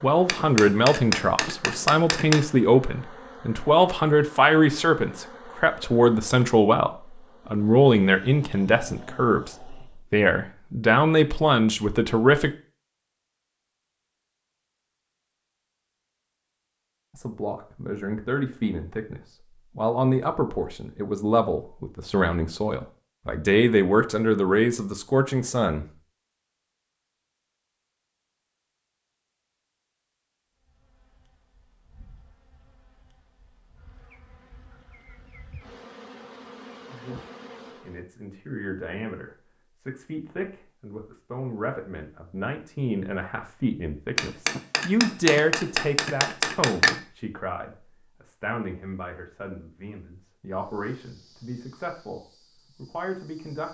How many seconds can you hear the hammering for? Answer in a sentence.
The hammering can be heard for 5 seconds in total.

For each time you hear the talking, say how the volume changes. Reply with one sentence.
The talking can be heard from 0.0 to 12.5 s, at a steady volume; from 17.1 to 25.9 s, getting louder; and from 37.8 to 53.6 s, getting louder then quieter.